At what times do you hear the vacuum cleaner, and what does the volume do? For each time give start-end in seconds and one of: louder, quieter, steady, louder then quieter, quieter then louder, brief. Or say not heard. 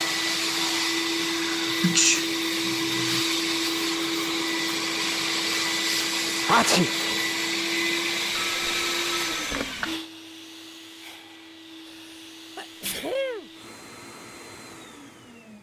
0.0-15.5 quieter.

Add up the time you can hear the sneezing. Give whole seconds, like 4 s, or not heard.
4 s.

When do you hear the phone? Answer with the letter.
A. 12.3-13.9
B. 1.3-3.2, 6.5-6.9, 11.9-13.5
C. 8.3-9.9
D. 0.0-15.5
C.